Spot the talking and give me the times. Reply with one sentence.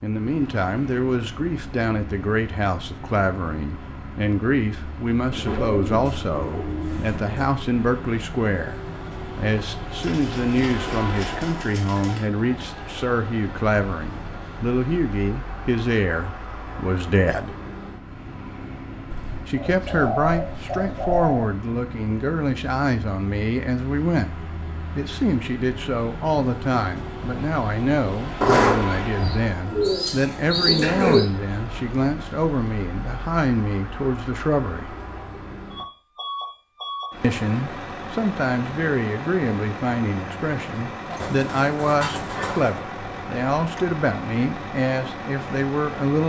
The talking can be heard from 0.0 to 17.6 s, from 19.4 to 35.0 s and from 37.2 to 46.2 s.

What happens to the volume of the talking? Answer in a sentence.
The loudness of the talking stays about the same.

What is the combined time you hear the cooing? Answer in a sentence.
The cooing can be heard for 11 seconds in total.